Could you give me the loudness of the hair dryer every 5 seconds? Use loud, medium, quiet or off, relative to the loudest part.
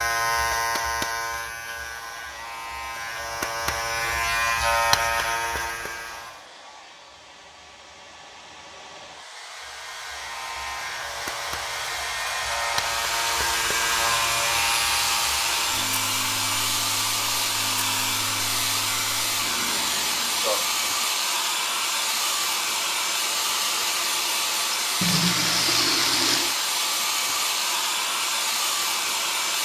quiet, quiet, loud, loud, loud, loud.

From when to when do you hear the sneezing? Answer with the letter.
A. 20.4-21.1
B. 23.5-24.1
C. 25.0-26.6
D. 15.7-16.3
A.